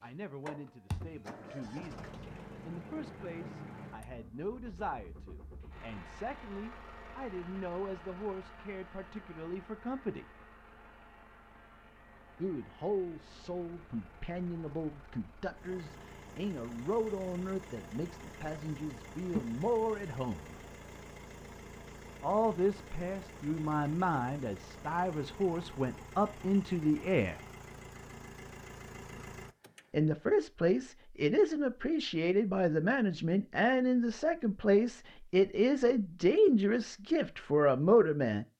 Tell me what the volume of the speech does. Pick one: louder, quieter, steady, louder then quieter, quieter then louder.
louder.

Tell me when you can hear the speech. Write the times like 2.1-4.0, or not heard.
0.0-10.2, 12.3-20.6, 22.2-27.4, 29.9-38.5.